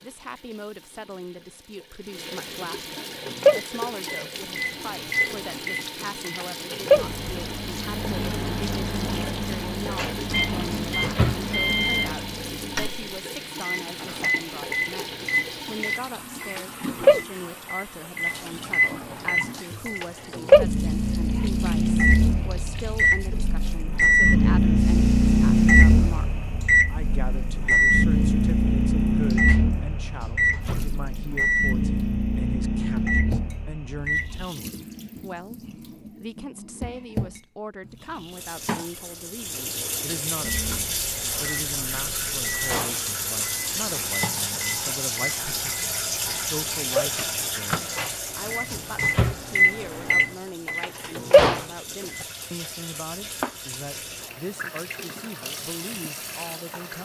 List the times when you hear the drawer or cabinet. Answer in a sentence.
You can hear the drawer or cabinet from 9.9 to 11.4 s, from 29.4 to 30.9 s and from 47.9 to 49.4 s.